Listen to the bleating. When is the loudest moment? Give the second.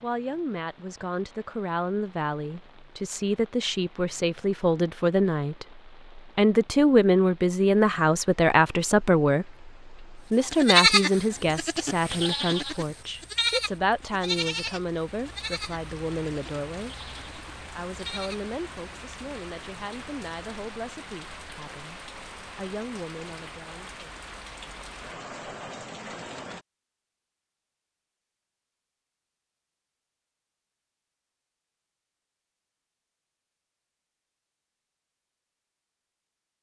11 s.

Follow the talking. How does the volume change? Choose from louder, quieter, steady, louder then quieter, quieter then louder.
louder then quieter.